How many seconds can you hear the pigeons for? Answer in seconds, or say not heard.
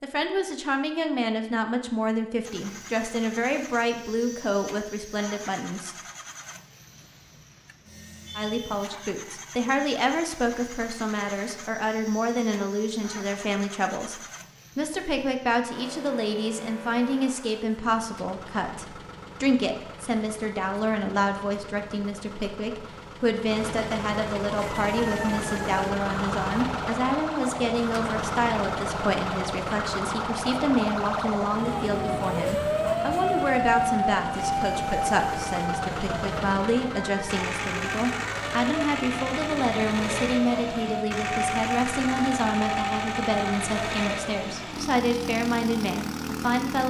not heard.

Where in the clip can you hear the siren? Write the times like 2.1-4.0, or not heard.
24.8-44.4.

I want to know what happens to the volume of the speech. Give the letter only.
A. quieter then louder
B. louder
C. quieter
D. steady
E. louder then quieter
D.